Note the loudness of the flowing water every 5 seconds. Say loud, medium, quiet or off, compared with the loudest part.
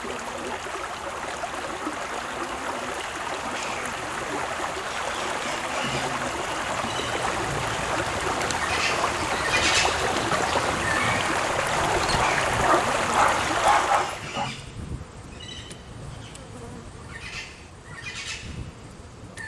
medium, loud, loud, off.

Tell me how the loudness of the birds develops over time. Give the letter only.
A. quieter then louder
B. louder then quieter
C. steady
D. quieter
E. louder
B.